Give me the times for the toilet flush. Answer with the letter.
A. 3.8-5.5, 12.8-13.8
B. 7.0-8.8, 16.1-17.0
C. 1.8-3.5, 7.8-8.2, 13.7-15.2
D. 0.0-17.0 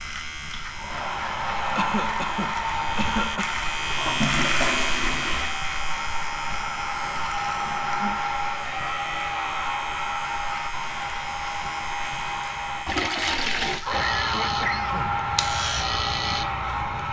A.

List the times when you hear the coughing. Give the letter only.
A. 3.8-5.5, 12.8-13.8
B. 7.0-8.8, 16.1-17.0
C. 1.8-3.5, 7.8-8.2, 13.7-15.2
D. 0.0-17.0
C.